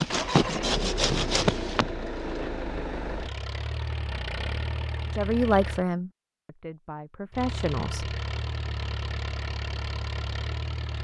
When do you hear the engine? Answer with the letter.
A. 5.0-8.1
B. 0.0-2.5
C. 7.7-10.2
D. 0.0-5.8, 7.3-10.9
D.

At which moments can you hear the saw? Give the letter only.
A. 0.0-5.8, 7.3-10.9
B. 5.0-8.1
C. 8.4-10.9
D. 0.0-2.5
D.